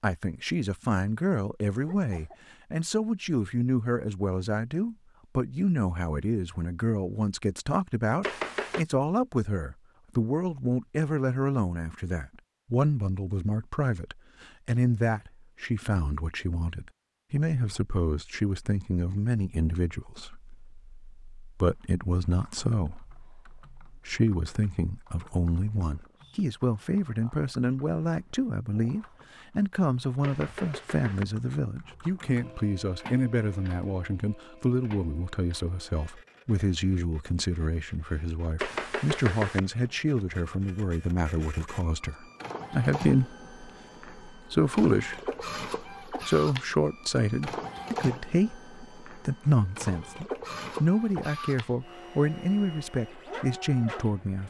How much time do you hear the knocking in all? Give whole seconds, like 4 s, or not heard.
3 s.